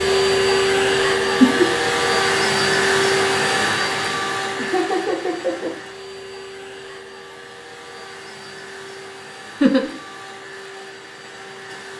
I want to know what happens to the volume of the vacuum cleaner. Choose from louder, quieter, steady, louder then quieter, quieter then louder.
quieter.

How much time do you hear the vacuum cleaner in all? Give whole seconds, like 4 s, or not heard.
12 s.